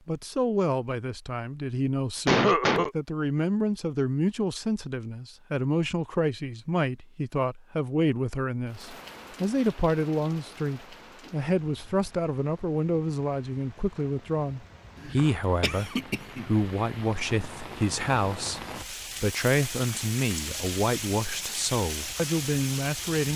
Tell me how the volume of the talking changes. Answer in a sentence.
The loudness of the talking stays about the same.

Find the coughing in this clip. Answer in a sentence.
The coughing can be heard from 2.2 to 2.9 s and from 15.0 to 16.7 s.